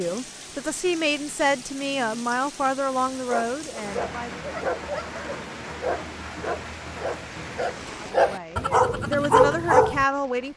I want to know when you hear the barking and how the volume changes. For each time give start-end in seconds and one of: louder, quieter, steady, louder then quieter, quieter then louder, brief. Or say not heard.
3.0-10.1 louder.